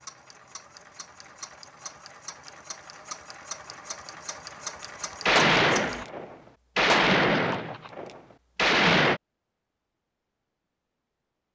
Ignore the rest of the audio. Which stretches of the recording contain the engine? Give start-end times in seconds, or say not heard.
0.0-6.0.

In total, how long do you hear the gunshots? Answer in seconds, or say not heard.
4 s.